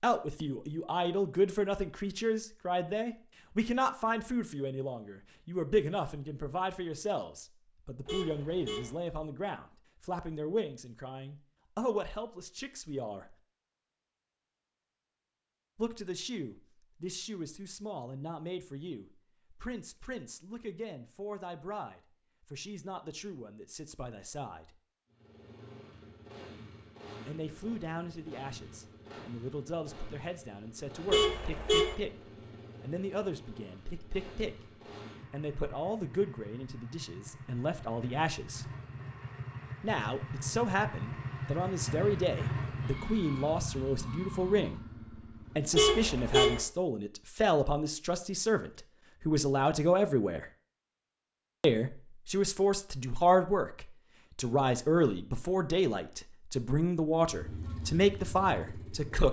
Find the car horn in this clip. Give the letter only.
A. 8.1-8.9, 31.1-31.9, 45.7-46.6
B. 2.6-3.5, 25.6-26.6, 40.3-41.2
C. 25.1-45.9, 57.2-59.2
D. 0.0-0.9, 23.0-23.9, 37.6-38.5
A.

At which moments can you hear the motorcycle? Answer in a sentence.
The motorcycle can be heard from 25.1 to 45.9 s and from 57.2 to 59.2 s.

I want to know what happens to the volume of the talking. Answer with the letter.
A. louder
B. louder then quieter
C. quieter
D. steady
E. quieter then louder
E.